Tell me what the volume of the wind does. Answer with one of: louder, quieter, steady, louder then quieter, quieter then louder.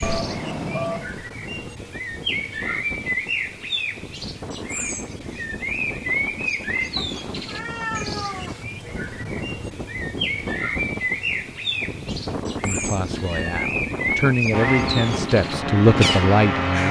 louder.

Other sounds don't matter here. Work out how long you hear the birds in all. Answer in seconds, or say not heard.
17 s.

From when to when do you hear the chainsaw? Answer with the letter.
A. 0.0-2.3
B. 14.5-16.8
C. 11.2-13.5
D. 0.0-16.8
B.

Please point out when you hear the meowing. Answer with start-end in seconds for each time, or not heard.
0.0-1.1, 7.0-8.7, 12.6-13.7.